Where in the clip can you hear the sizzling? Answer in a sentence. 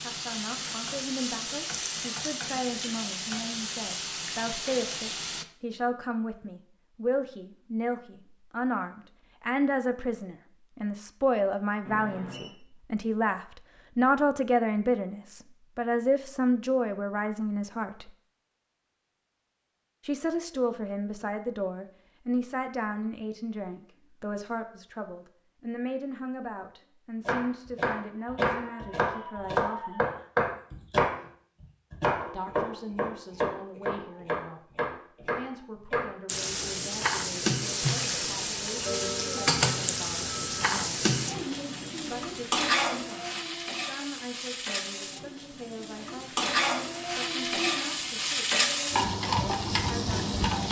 You can hear the sizzling from 0.0 to 5.5 s and from 36.2 to 50.6 s.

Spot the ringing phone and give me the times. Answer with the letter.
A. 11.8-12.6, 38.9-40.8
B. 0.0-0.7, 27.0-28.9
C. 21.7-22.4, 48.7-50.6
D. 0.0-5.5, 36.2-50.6
A.